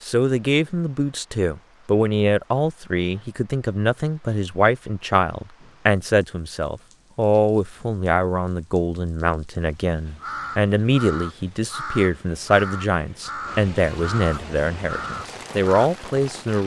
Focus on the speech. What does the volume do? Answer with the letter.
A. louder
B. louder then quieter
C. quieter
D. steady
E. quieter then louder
D.